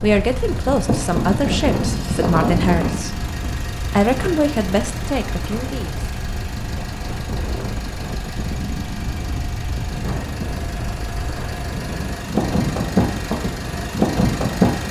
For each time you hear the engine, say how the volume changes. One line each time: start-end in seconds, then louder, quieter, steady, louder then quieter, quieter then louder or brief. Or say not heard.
0.0-14.8 quieter then louder.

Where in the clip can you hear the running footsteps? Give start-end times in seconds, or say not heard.
not heard.